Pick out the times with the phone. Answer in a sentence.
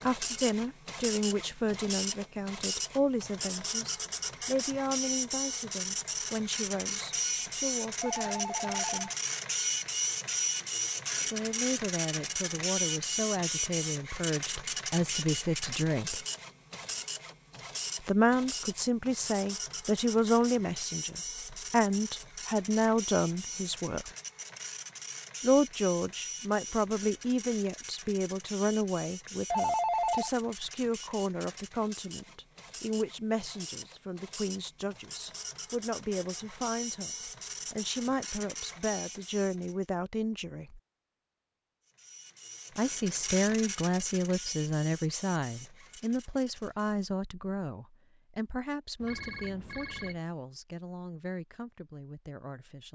You can hear the phone from 8.0 to 9.2 s, from 29.2 to 30.3 s and from 49.0 to 50.2 s.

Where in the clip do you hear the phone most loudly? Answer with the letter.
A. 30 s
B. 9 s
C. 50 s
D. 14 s
A.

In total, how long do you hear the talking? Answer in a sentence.
You can hear the talking for 46 seconds altogether.